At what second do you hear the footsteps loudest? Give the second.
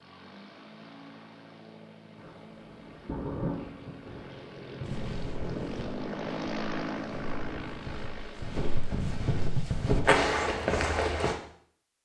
10 s.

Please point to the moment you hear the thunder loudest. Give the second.
3 s.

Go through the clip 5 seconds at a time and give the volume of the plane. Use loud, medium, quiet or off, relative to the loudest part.
medium, loud, off.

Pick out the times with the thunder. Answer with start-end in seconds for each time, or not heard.
2.1-5.7.